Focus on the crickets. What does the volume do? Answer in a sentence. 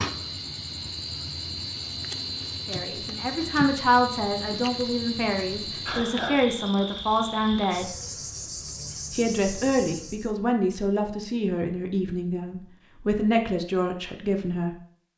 The volume of the crickets stays about the same.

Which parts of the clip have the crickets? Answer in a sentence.
You can hear the crickets from 0.0 to 10.3 s.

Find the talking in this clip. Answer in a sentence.
You can hear the talking from 2.6 to 7.8 s and from 9.1 to 14.8 s.